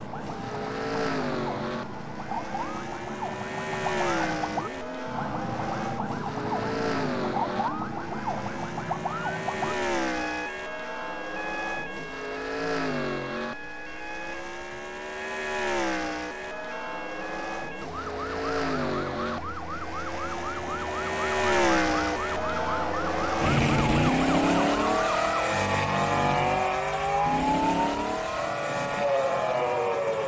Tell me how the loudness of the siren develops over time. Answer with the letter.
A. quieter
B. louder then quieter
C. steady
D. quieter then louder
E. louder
D.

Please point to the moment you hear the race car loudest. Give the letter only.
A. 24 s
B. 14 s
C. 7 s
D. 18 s
A.